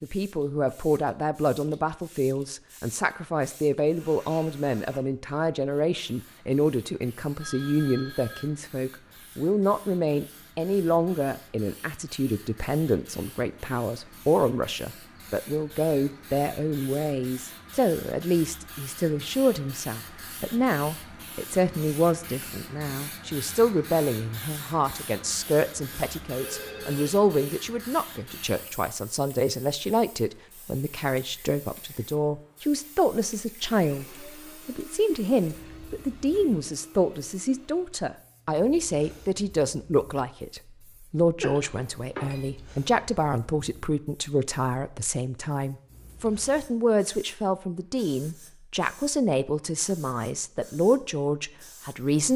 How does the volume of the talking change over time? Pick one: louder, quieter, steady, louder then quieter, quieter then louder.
steady.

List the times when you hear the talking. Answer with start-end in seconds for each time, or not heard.
0.0-52.3.